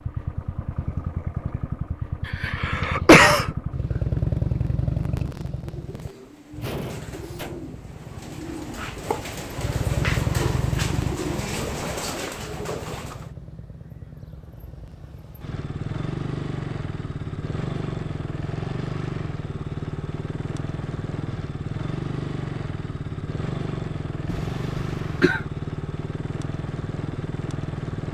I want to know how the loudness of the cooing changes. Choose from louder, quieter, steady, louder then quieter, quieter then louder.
louder.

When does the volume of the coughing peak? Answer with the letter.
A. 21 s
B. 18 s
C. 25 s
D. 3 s
D.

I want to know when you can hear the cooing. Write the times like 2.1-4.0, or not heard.
5.6-13.3.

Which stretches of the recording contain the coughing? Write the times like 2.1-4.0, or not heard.
2.2-3.5, 24.3-25.4.